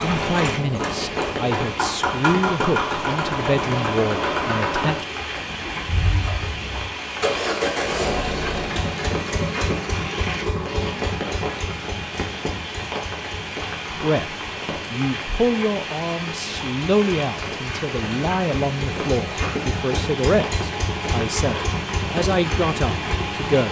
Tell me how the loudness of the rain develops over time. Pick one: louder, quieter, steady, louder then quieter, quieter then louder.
steady.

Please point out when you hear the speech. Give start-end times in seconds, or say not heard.
0.0-5.0, 13.9-23.6.